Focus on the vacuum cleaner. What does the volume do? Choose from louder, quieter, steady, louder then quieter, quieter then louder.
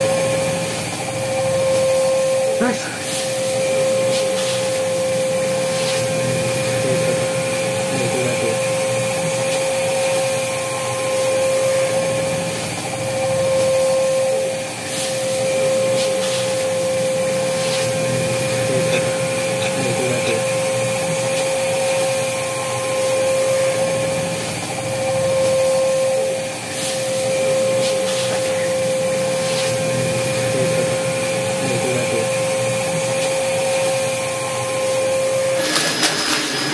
steady.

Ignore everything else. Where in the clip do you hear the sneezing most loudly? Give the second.
3 s.